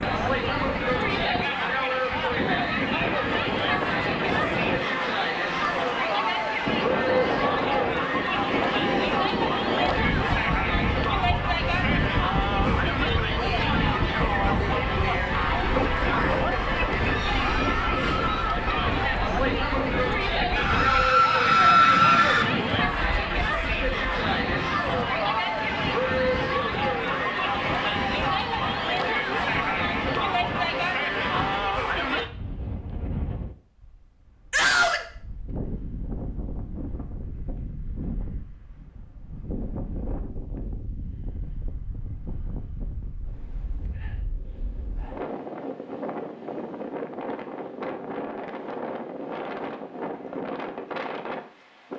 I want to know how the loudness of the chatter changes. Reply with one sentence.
The loudness of the chatter stays about the same.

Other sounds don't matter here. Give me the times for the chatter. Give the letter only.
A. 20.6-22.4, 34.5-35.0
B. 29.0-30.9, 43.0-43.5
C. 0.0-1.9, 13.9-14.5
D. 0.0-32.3
D.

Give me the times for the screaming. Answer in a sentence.
The screaming can be heard from 20.6 to 22.4 s and from 34.5 to 35.0 s.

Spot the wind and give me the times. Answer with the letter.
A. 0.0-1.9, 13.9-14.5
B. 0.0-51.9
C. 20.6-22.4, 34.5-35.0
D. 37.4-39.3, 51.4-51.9
B.